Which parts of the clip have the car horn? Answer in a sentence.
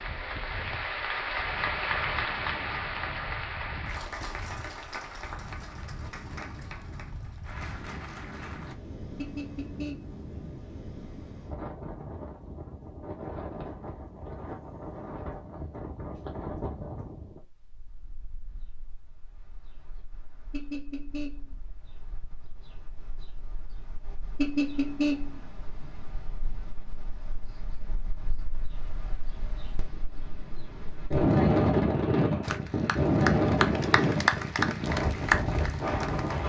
The car horn can be heard from 9.2 to 10.2 s, from 20.5 to 21.6 s and from 24.4 to 25.4 s.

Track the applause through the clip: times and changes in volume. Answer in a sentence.
The applause can be heard from 0.0 to 8.8 s, getting quieter; and from 32.4 to 36.4 s, getting louder then quieter.